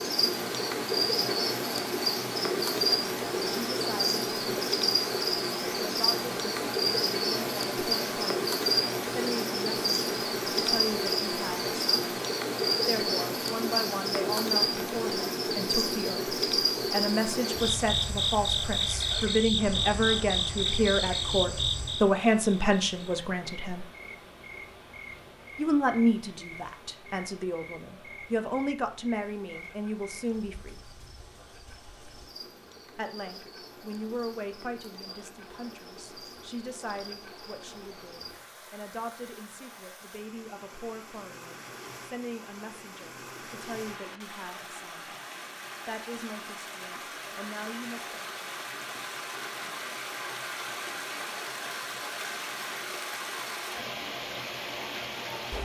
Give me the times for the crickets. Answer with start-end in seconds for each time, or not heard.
0.0-38.4.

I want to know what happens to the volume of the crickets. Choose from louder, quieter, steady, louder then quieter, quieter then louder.
quieter.